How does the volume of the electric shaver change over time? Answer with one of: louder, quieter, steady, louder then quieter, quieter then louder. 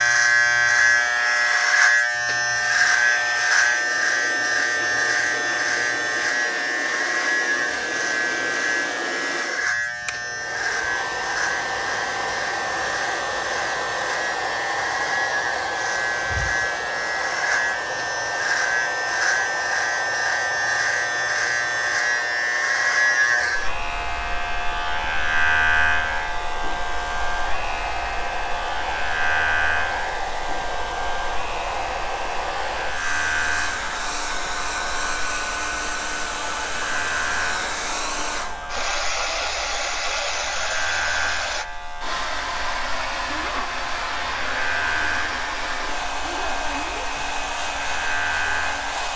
quieter.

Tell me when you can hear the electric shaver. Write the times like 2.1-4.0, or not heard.
0.0-49.1.